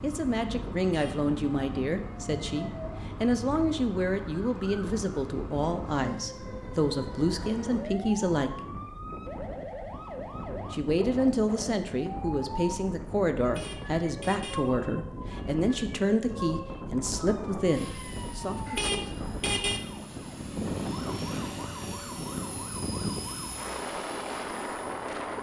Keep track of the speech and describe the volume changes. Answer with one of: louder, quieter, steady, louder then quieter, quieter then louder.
steady.